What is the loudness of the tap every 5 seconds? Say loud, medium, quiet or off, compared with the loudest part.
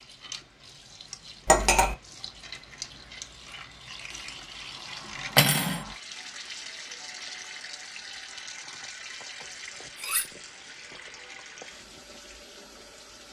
loud, loud, medium.